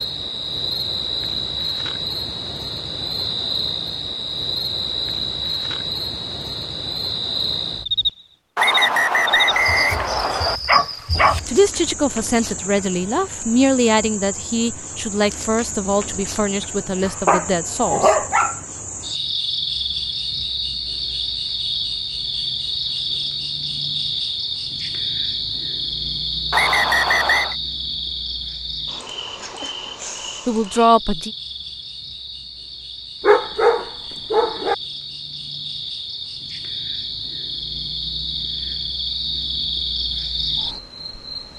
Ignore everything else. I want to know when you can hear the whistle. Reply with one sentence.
You can hear the whistle from 8.6 to 10.6 s and from 26.5 to 27.6 s.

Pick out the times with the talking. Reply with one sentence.
You can hear the talking from 11.4 to 18.1 s and from 30.4 to 31.3 s.